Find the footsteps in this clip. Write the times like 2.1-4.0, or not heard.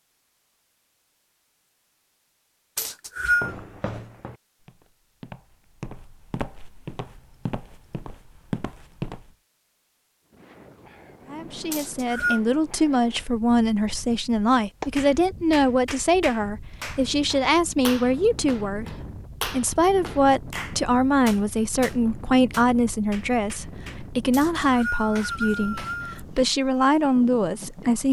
3.4-9.3.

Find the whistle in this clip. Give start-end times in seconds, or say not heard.
2.8-3.5, 11.7-12.4, 24.3-26.2.